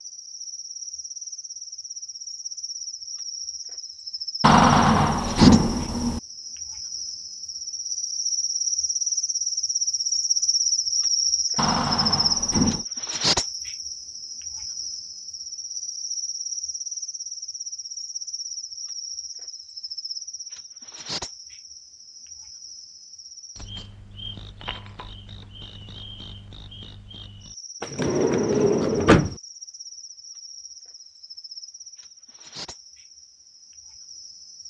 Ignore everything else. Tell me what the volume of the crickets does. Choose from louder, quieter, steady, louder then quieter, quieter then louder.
louder then quieter.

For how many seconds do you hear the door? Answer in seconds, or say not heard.
5 s.